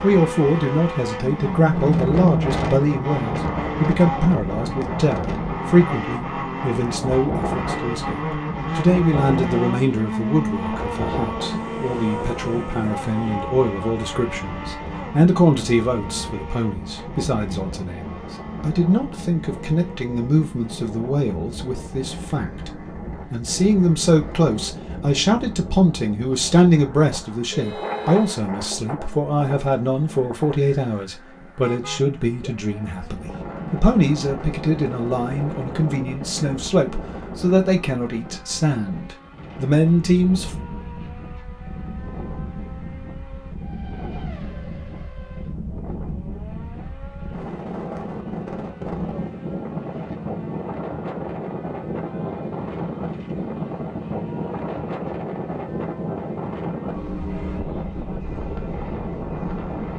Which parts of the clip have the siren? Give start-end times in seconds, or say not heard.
not heard.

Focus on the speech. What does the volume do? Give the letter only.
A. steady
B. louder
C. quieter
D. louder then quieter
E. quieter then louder
A.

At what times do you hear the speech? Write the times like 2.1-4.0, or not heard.
0.0-22.7, 23.3-40.5.